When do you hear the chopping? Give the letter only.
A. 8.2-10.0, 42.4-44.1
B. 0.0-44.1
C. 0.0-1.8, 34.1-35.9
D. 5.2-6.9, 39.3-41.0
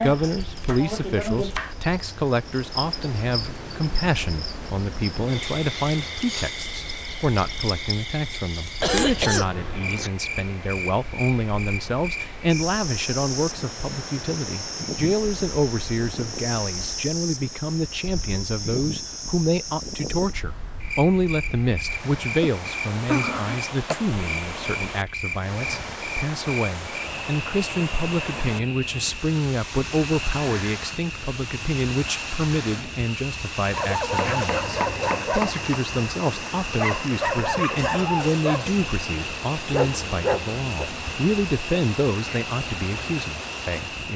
C.